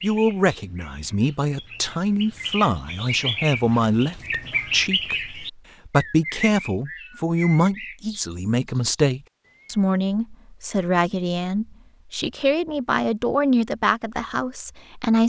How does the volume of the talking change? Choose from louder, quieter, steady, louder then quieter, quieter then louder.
steady.